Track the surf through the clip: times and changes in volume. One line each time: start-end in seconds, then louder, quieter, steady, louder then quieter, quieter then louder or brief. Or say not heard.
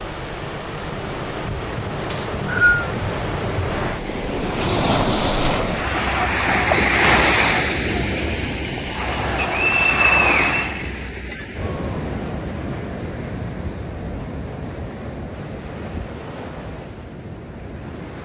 0.0-18.2 louder then quieter.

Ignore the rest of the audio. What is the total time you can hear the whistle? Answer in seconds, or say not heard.
3 s.